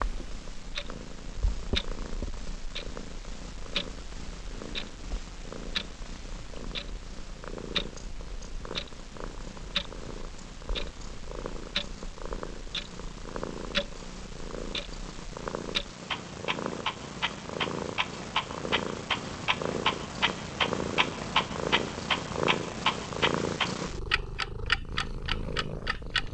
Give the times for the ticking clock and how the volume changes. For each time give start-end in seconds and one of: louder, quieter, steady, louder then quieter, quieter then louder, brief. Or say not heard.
0.0-26.3 louder.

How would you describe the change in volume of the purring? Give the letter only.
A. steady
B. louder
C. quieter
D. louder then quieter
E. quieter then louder
B.